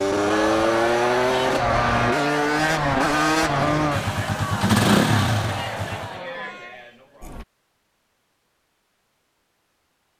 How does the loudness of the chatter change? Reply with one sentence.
The volume of the chatter goes down.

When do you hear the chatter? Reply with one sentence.
The chatter can be heard from 0.1 to 7.5 s.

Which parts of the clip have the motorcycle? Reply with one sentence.
The motorcycle can be heard from 0.0 to 6.2 s.